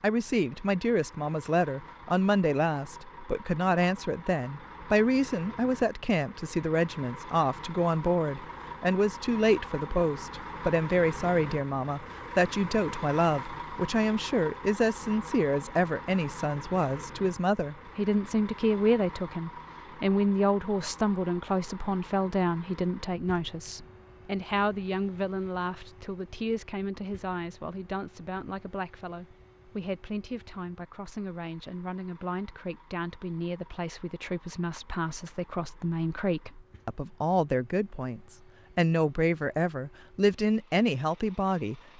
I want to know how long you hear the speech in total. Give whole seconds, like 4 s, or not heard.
42 s.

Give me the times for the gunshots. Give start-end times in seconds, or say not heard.
not heard.